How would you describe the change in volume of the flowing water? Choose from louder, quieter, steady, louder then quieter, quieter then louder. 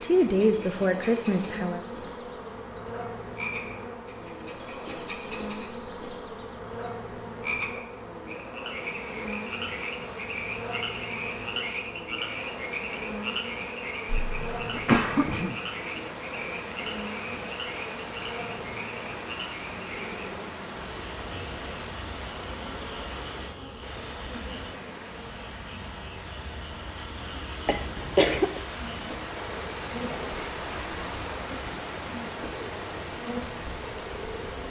louder.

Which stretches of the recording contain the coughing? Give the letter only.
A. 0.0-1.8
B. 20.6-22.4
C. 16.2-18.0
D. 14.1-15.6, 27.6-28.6
D.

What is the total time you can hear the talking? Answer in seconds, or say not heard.
2 s.